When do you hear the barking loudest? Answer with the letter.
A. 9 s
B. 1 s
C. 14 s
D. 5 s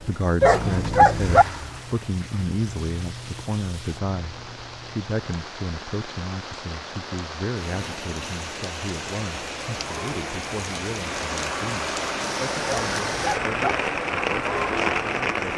B.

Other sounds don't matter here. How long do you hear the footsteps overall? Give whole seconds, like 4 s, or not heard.
not heard.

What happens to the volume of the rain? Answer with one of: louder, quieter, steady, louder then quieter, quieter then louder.
louder.